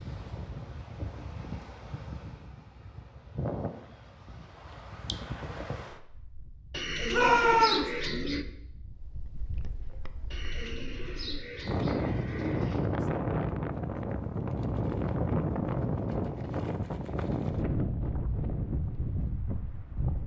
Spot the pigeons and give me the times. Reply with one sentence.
The pigeons can be heard from 6.7 to 8.4 s and from 10.3 to 12.8 s.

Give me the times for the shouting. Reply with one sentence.
The shouting can be heard from 7.1 to 7.9 s.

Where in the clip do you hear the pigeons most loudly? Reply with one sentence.
The loudest moment of the pigeons is at 8 seconds.